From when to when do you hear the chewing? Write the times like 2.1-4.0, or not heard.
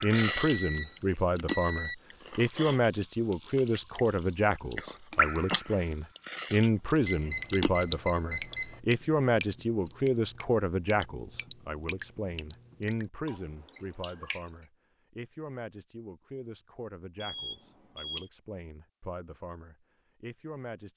0.0-7.8.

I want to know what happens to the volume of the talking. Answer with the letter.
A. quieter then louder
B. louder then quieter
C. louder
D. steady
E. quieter
E.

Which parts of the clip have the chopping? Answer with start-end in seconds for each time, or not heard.
not heard.